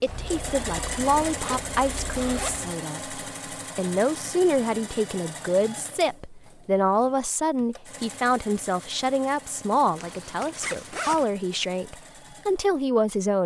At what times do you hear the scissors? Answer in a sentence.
You can't hear the scissors here.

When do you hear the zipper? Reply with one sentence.
You can hear the zipper from 0.1 to 2.8 s and from 9.9 to 11.2 s.